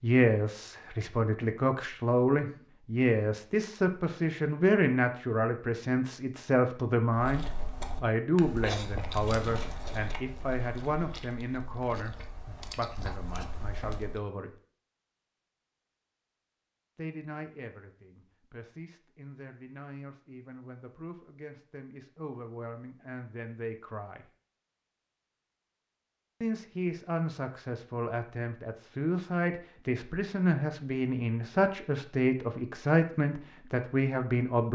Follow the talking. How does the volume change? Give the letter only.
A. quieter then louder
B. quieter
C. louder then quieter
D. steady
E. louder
A.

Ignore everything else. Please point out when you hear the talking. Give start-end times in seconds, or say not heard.
0.0-14.6, 16.9-24.2, 26.4-34.7.